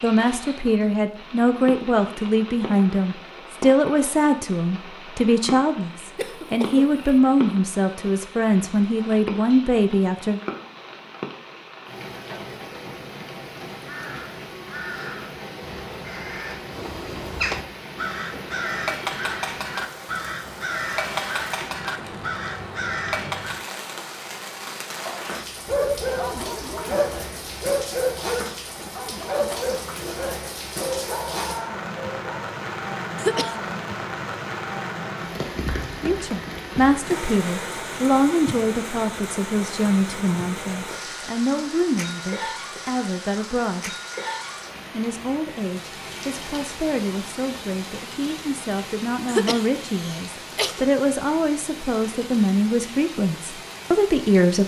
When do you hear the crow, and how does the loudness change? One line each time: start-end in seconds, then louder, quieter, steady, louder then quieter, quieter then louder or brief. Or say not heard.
13.8-23.8 louder.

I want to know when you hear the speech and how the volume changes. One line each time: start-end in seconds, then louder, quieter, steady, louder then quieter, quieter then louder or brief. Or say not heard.
0.0-10.4 steady
36.0-43.9 quieter
44.9-54.6 louder.